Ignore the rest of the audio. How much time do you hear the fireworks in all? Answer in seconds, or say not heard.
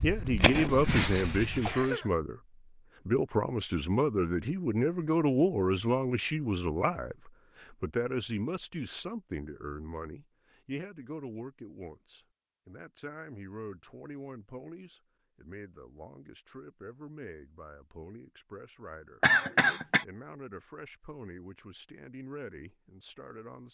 2 s.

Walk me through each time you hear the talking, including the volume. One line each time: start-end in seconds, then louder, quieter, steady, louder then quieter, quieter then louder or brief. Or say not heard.
0.0-2.4 brief
3.0-23.6 quieter.